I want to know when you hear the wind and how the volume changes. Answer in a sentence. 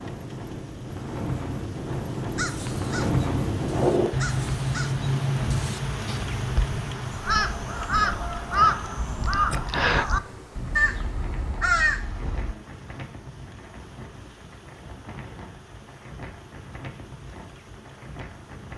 You can hear the wind from 0.0 to 18.7 s, getting quieter.